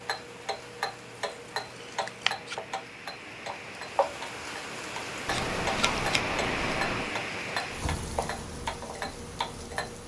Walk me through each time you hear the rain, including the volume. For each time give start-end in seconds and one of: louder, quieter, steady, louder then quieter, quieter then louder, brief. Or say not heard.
0.0-10.0 louder then quieter.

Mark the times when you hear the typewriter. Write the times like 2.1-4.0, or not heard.
not heard.